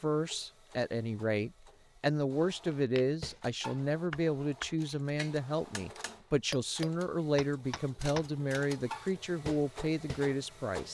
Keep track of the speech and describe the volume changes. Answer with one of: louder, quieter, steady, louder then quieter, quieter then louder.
steady.